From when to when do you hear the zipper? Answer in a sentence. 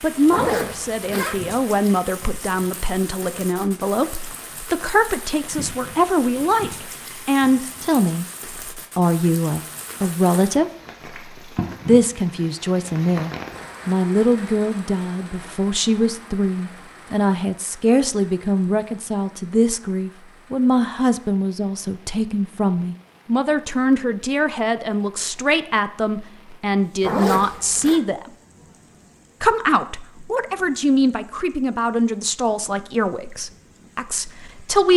You can hear the zipper from 0.3 to 1.4 s and from 27.0 to 28.0 s.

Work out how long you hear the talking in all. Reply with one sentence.
The talking can be heard for 33 seconds in total.